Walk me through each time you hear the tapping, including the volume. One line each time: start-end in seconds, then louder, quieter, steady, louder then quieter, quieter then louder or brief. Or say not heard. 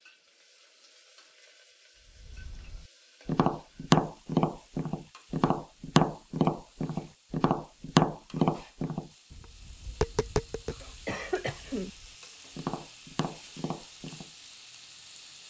2.2-14.3 quieter.